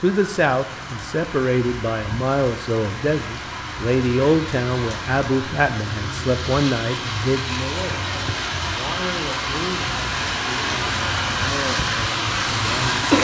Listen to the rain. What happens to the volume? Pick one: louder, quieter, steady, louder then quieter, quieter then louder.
louder.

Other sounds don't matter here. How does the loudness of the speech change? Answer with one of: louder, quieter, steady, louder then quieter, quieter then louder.
quieter.